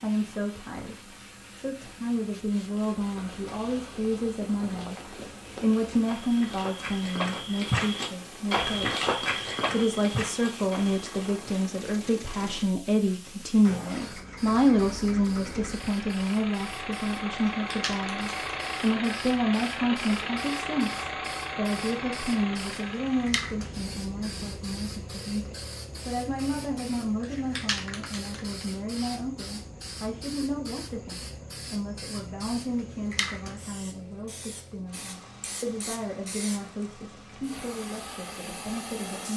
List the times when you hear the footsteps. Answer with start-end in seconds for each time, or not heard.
2.9-11.4.